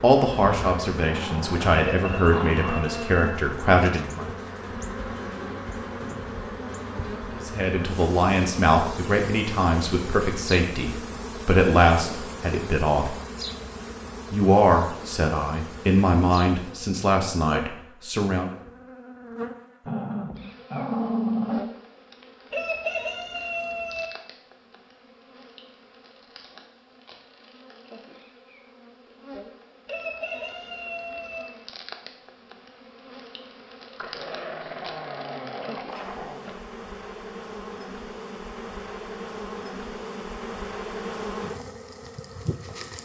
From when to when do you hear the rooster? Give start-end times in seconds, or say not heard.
1.9-3.2, 22.5-24.1, 29.9-31.4.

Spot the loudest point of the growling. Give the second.
21 s.